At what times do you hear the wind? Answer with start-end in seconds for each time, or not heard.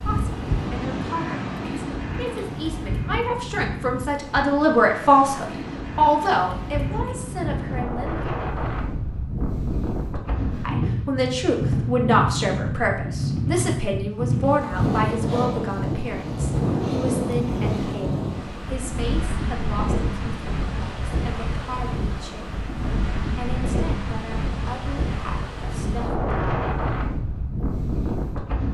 0.0-28.6.